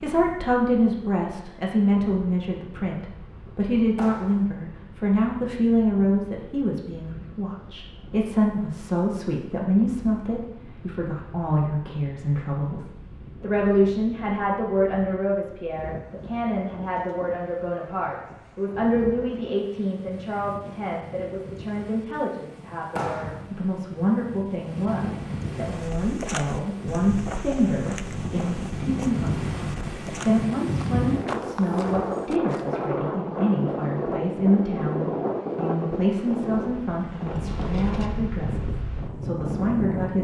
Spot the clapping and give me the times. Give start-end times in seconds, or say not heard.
4.0-4.5, 22.9-23.4.